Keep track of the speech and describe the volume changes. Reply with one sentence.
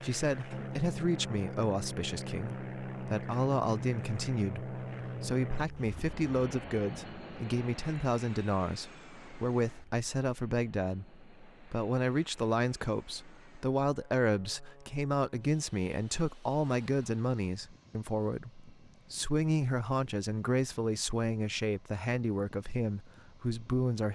The loudness of the speech stays about the same.